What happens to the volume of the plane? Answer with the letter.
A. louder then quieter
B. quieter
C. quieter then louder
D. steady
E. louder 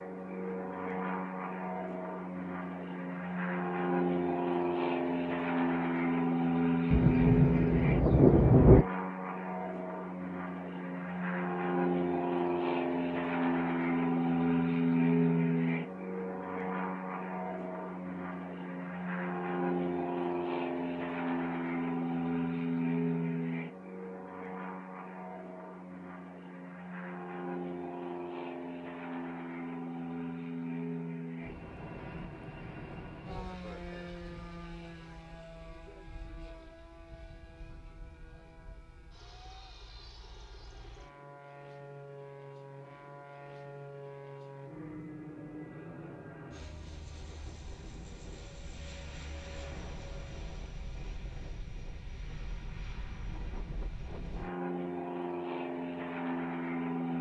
C.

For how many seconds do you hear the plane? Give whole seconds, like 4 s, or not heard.
57 s.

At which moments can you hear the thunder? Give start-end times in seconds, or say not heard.
6.9-8.8.